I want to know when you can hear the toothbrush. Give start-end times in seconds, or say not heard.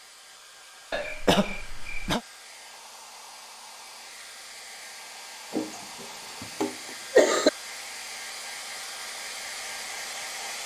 not heard.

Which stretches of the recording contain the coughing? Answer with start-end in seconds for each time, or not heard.
0.9-2.2, 5.5-7.5.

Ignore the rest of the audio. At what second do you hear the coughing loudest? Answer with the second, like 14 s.
7 s.